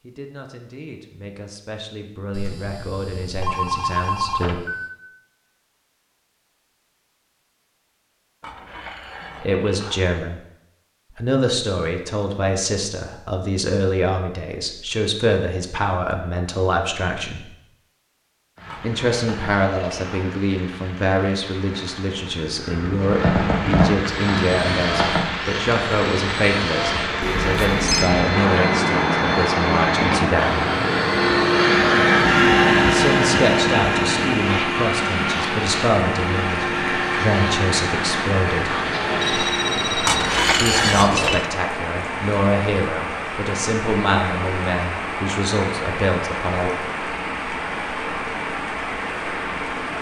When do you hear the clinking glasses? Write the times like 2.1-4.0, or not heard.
8.4-10.1, 18.6-20.3, 40.0-41.5.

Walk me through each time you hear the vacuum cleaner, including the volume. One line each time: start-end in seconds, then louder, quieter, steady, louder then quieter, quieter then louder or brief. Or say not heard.
24.0-40.6 louder then quieter.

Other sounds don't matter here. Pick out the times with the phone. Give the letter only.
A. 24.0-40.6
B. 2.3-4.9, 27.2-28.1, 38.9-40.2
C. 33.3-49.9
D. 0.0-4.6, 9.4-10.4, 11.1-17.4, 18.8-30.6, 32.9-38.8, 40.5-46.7
B.